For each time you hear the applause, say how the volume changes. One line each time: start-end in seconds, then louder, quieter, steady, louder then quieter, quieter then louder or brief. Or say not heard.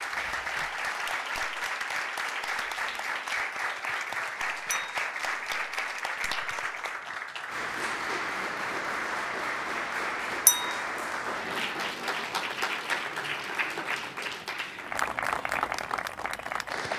0.0-16.9 steady.